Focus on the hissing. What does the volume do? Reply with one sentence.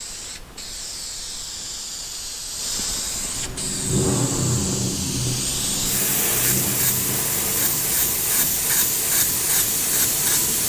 The loudness of the hissing goes up.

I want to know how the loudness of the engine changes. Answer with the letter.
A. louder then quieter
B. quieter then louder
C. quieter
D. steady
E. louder
C.